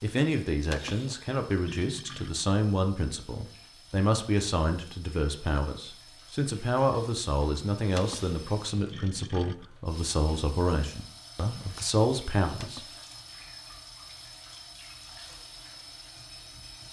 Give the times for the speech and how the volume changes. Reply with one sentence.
You can hear the speech from 0.0 to 12.8 s, at a steady volume.